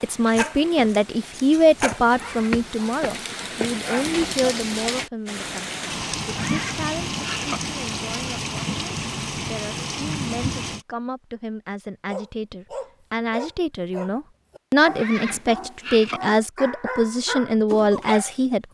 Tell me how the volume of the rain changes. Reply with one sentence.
The volume of the rain goes up.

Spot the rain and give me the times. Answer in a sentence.
You can hear the rain from 0.0 to 10.8 s.